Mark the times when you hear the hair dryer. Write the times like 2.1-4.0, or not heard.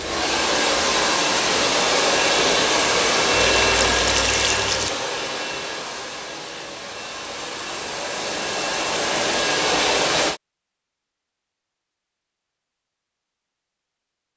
0.0-10.4.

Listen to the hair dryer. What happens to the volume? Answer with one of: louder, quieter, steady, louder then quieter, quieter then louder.
quieter then louder.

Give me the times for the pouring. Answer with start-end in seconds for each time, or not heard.
3.5-4.9.